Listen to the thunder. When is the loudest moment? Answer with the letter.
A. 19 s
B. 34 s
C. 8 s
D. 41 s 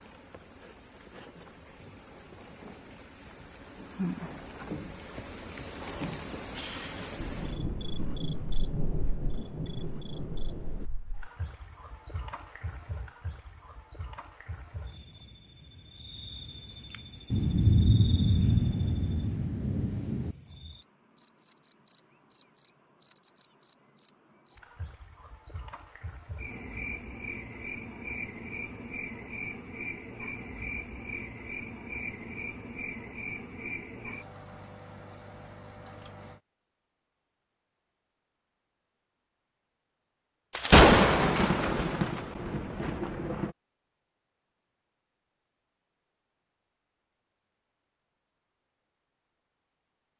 D.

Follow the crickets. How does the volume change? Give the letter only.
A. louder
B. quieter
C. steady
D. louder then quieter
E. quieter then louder
E.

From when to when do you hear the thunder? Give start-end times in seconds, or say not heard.
7.2-10.9, 17.3-20.4, 40.5-43.5.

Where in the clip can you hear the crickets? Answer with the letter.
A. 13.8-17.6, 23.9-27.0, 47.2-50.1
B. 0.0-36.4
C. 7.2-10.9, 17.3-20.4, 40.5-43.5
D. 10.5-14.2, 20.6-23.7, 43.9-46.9
B.